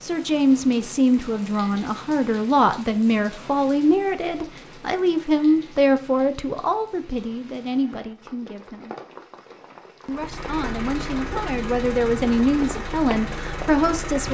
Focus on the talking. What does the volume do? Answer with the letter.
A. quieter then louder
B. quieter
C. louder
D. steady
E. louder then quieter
A.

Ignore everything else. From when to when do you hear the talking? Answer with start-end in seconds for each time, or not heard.
0.0-8.9, 10.1-14.2.